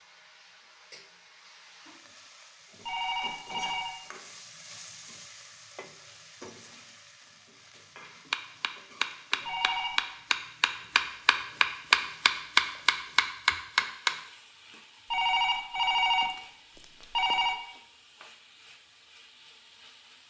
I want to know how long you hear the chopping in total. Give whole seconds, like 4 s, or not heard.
6 s.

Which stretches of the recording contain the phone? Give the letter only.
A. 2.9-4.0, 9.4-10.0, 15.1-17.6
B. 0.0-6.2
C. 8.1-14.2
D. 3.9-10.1
A.